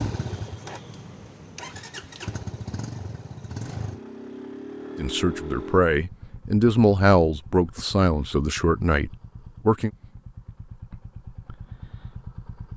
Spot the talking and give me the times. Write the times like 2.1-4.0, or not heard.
5.0-9.9.